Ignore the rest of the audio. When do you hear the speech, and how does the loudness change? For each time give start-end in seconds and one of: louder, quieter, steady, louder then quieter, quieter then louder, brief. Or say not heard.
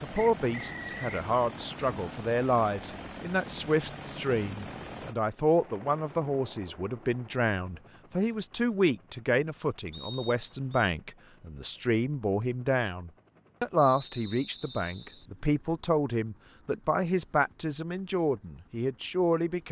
0.0-19.6 steady.